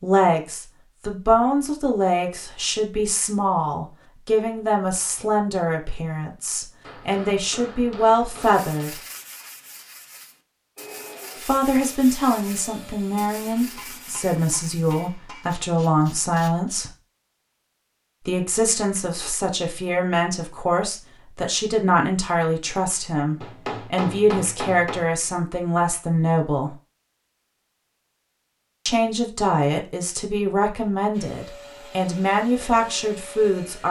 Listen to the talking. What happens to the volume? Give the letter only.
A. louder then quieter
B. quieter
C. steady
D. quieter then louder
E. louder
C.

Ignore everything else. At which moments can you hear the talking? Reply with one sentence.
The talking can be heard from 0.0 to 9.0 s, from 11.3 to 16.9 s, from 18.2 to 26.8 s and from 28.9 to 33.8 s.